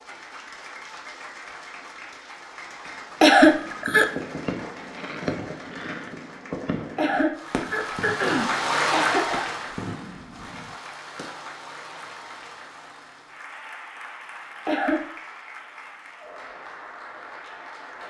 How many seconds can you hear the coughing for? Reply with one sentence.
The coughing can be heard for 4 seconds in total.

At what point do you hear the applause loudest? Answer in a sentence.
The volume of the applause peaks at 9 seconds.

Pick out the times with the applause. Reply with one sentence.
The applause can be heard from 0.0 to 18.0 s.